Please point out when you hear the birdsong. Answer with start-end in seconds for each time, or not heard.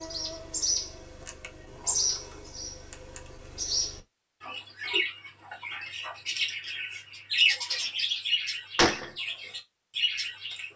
0.0-10.7.